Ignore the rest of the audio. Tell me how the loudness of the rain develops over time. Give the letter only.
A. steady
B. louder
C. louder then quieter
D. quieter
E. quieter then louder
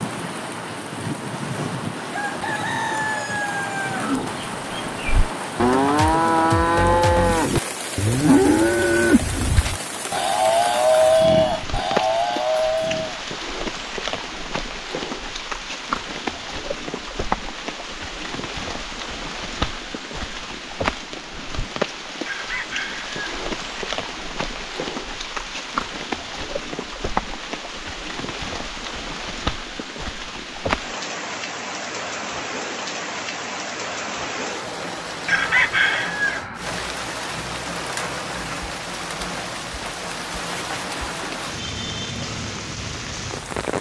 A.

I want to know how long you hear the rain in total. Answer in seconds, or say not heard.
44 s.